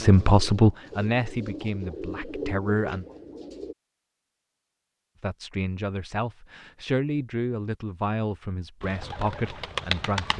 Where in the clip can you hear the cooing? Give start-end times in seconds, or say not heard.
0.0-3.8, 8.8-10.3.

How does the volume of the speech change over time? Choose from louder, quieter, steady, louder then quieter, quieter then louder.
quieter.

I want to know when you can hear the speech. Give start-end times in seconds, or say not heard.
0.0-3.0, 5.2-10.3.